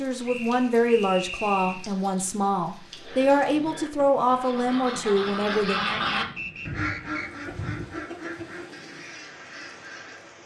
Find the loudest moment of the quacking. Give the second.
6 s.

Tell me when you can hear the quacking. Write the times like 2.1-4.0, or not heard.
2.9-10.4.